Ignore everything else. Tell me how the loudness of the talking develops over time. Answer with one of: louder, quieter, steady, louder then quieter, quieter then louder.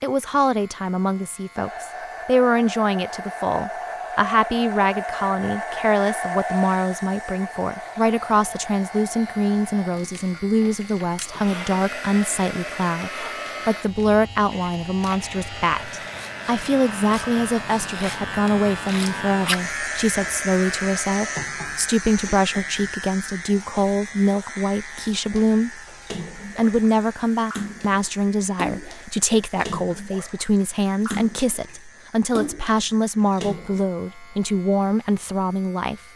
steady.